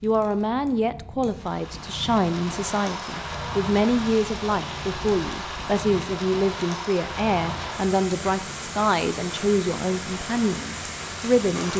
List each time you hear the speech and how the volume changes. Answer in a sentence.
The speech can be heard from 0.0 to 11.7 s, at a steady volume.